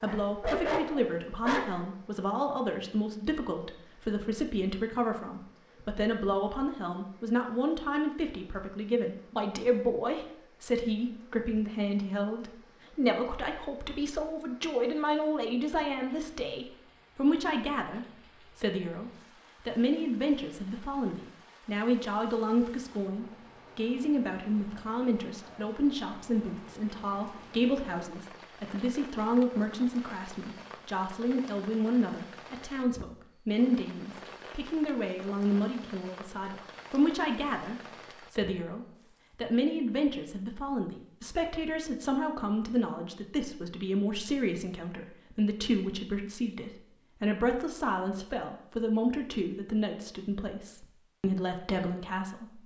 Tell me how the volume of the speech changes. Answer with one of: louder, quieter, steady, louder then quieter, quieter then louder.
steady.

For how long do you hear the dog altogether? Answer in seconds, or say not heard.
2 s.